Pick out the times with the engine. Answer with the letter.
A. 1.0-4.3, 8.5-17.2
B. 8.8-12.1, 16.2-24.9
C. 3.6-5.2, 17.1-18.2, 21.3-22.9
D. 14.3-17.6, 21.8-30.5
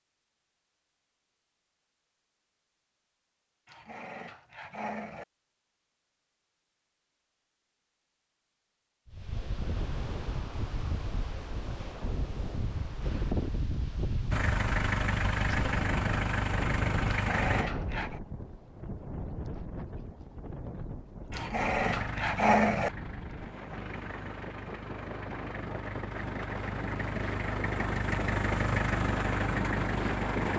D.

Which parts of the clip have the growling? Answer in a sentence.
The growling can be heard from 3.6 to 5.2 s, from 17.1 to 18.2 s and from 21.3 to 22.9 s.